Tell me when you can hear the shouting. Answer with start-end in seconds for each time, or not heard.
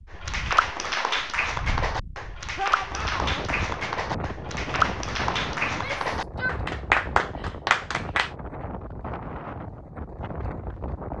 2.5-3.5, 5.7-6.7.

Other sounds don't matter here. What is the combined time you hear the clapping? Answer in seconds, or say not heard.
8 s.